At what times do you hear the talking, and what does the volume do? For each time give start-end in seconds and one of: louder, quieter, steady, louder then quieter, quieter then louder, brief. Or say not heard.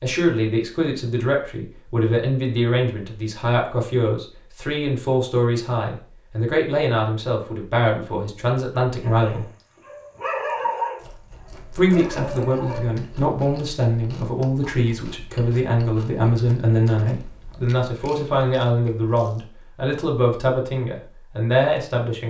0.0-9.4 steady
11.7-22.2 steady.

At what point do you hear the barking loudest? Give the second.
11 s.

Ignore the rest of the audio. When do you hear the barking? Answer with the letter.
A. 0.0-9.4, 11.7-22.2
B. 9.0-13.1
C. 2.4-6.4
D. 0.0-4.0
B.